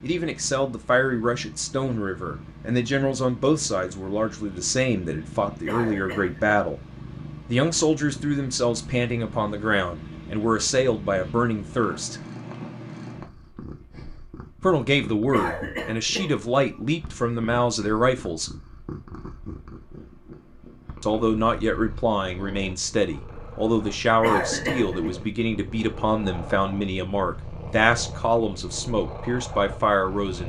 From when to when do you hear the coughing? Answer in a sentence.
The coughing can be heard from 5.7 to 6.5 s, from 15.3 to 16.4 s and from 24.2 to 25.1 s.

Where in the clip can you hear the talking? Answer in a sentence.
The talking can be heard from 0.0 to 6.8 s, from 7.5 to 12.2 s, from 14.6 to 18.5 s and from 21.0 to 30.4 s.